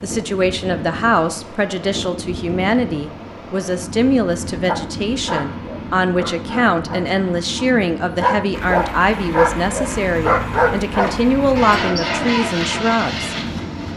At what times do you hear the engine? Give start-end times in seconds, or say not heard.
8.5-13.9.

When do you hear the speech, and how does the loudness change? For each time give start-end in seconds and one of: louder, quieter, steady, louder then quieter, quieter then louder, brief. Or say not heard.
0.0-13.3 steady.